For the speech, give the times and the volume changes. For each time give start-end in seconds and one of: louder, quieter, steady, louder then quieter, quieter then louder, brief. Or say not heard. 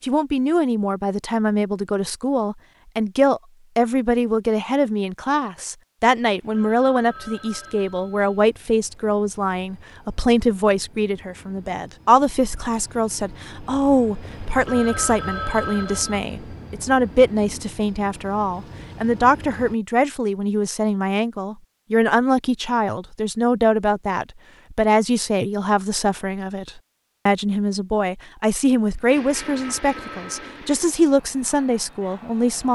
0.0-32.7 steady.